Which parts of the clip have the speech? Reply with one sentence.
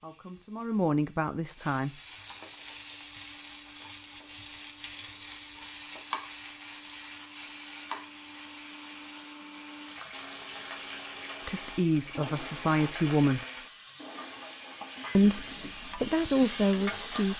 The speech can be heard from 0.0 to 1.9 s, from 11.4 to 13.4 s and from 15.2 to 17.3 s.